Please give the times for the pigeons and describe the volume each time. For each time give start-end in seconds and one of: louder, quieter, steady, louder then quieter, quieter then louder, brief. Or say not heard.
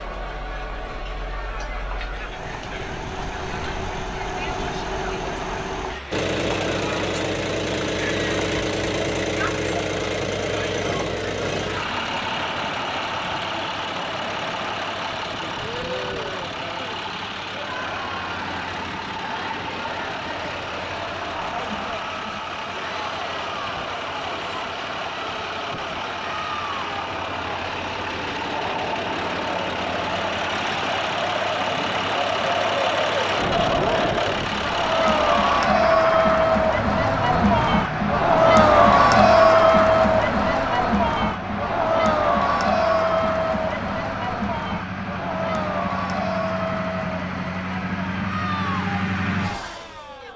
not heard.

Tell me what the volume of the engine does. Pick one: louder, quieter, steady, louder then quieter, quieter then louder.
steady.